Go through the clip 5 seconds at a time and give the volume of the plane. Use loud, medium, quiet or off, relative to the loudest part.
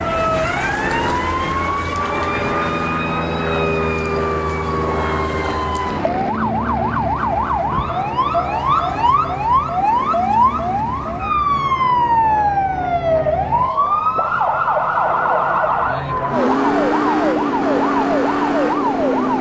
loud, loud, medium, medium.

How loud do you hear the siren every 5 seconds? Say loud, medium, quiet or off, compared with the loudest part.
medium, loud, loud, loud.